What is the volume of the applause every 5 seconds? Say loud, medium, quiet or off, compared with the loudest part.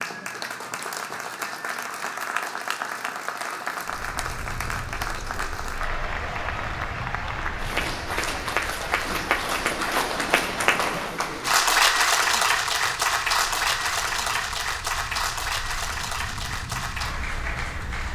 medium, medium, loud, medium.